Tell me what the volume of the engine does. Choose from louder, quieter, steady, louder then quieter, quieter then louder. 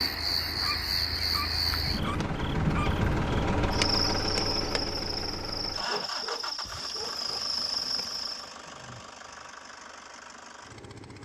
louder then quieter.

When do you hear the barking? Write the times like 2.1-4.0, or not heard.
0.6-2.9, 5.8-7.4.